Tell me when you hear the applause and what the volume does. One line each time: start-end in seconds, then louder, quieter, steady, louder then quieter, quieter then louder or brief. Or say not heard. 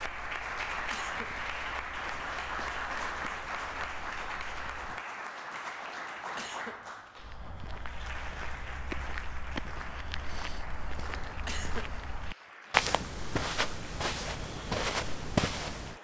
0.0-15.9 quieter.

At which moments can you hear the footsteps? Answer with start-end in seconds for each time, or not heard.
0.0-5.0, 7.2-15.9.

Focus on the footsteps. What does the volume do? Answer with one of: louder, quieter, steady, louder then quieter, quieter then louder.
louder.